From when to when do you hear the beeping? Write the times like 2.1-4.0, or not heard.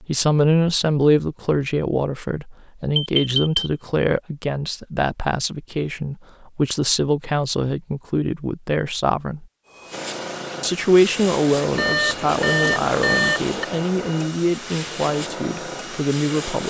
3.0-3.7, 11.8-13.7.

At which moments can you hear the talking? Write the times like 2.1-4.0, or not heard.
0.0-9.4, 10.6-16.6.